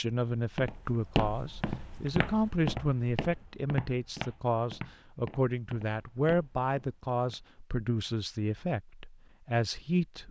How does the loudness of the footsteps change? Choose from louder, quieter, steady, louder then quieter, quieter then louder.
quieter.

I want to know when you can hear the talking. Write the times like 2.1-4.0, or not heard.
0.0-10.2.